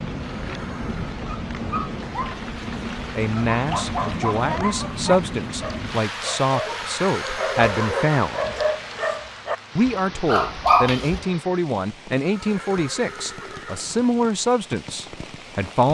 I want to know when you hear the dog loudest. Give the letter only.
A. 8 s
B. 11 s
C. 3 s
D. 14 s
B.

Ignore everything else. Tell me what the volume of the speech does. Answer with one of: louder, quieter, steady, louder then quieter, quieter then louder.
steady.